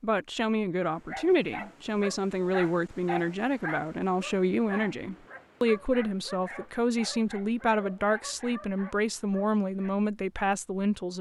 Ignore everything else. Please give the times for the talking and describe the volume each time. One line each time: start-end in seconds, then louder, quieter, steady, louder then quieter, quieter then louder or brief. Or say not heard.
0.0-11.1 steady.